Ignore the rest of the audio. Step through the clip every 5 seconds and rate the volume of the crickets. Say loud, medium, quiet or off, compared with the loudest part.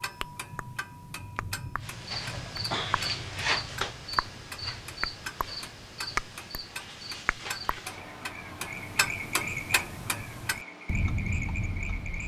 loud, medium, medium.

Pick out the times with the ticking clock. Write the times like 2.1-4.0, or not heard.
0.0-12.2.